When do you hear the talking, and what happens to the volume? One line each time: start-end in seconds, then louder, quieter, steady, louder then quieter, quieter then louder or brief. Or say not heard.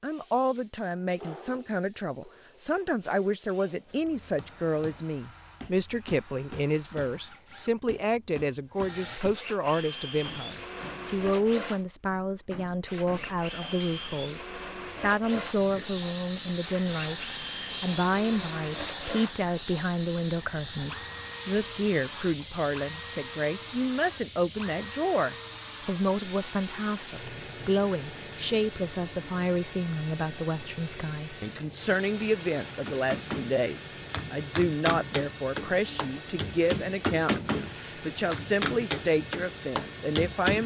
0.0-40.6 steady.